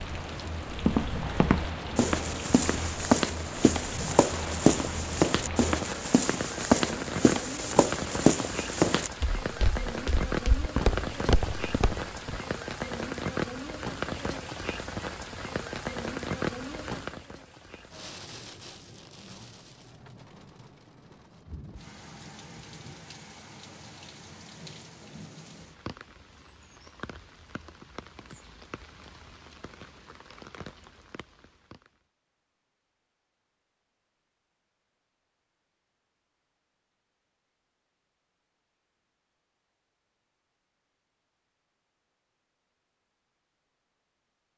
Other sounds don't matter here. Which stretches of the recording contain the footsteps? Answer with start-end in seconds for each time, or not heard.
0.7-12.4.